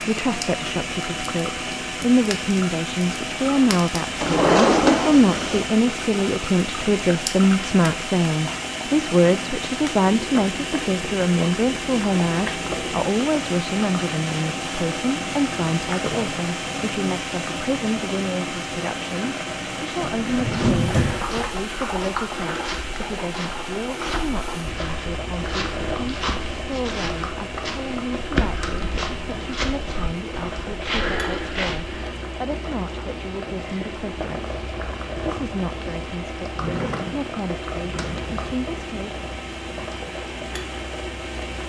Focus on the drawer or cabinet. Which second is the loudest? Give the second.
5 s.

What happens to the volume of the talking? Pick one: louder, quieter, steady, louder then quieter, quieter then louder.
quieter.